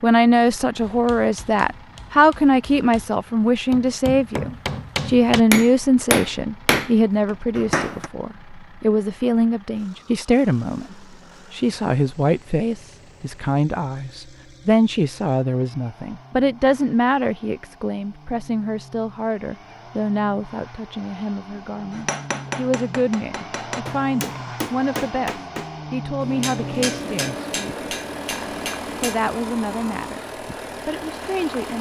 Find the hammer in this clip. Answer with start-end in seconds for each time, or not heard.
0.8-8.1, 21.9-29.2.